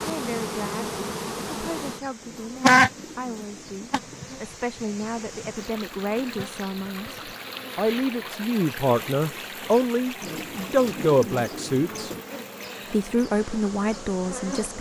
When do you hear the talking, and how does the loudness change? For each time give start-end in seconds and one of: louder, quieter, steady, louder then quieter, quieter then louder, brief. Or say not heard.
0.0-12.1 louder
12.9-14.7 brief.